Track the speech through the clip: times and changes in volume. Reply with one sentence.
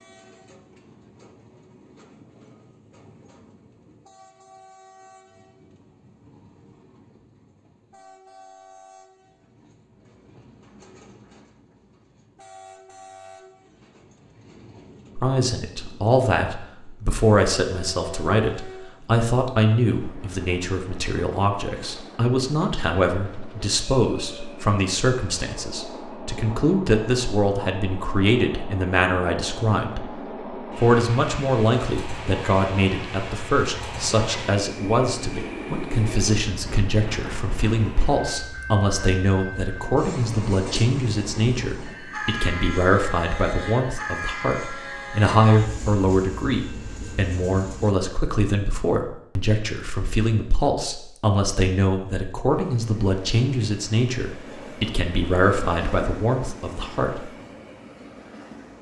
You can hear the speech from 15.2 to 30.1 s, at a steady volume; and from 30.8 to 57.2 s, at a steady volume.